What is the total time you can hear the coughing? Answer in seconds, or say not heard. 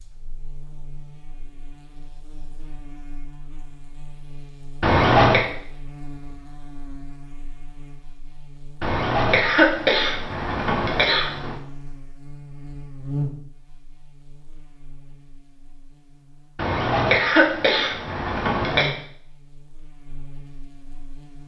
6 s.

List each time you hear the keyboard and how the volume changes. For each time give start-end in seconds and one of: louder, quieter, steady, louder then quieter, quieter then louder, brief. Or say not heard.
not heard.